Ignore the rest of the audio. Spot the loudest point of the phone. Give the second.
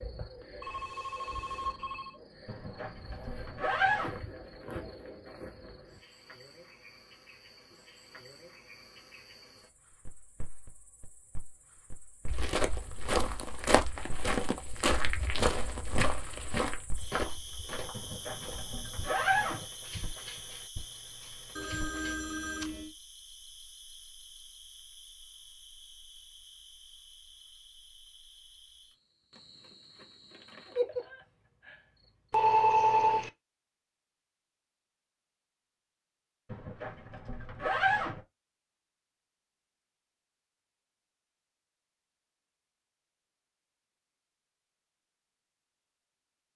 33 s.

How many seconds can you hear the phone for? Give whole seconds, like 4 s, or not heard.
4 s.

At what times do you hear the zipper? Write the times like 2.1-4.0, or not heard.
2.5-4.2, 17.9-19.6, 36.5-38.2.